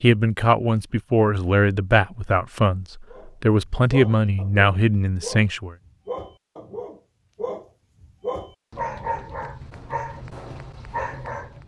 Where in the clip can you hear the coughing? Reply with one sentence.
You can't hear the coughing here.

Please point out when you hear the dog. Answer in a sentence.
The dog can be heard from 3.1 to 11.6 s.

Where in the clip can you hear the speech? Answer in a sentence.
The speech can be heard from 0.0 to 5.8 s.